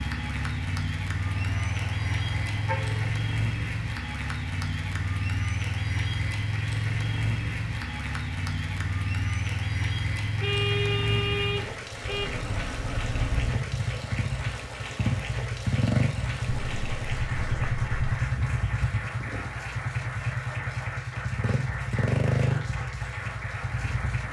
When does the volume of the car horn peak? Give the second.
11 s.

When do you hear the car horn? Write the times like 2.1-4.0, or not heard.
1.2-3.1, 10.4-12.3, 16.4-18.2.